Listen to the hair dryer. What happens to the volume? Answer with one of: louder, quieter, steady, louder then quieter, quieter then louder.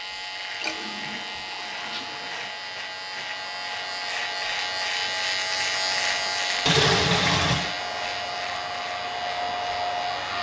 louder.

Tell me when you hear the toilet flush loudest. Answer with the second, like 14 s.
7 s.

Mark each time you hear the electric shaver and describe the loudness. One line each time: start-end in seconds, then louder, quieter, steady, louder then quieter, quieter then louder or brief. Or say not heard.
0.0-10.3 louder then quieter.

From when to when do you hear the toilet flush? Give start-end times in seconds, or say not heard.
0.4-2.5, 6.7-7.8.